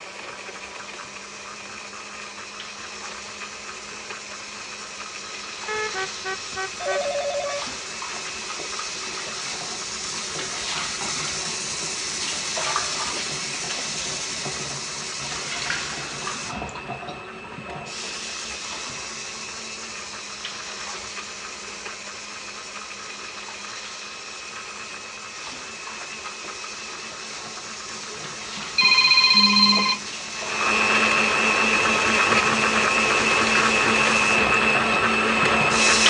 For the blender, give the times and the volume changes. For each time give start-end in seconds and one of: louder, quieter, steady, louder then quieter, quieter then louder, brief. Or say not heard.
0.0-36.0 louder.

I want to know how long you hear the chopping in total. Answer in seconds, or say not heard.
not heard.